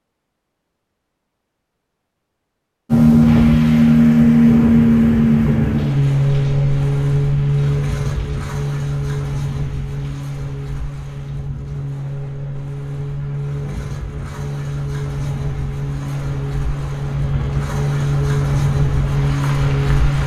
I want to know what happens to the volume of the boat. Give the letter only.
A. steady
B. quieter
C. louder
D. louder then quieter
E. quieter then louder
E.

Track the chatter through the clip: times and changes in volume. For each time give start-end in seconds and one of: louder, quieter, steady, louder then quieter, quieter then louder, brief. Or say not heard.
not heard.